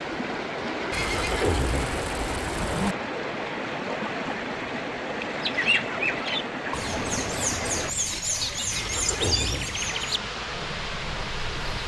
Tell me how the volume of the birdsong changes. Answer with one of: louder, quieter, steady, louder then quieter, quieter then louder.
quieter.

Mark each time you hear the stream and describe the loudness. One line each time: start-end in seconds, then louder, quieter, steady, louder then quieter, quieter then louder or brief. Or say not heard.
0.0-11.8 steady.